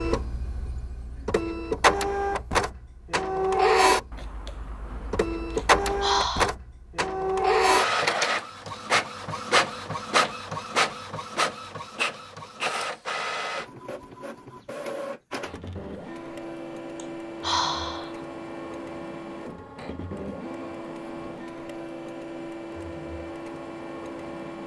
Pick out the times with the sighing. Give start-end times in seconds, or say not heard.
5.5-6.5, 16.9-18.1.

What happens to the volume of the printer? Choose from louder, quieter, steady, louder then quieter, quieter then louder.
quieter.